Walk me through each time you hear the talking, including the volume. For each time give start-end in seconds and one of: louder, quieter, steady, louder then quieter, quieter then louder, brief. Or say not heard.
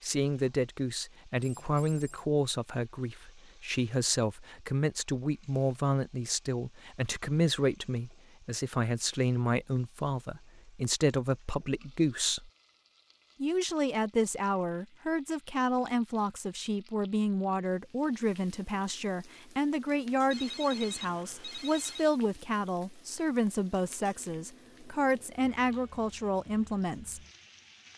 0.0-12.5 steady
13.4-27.2 steady.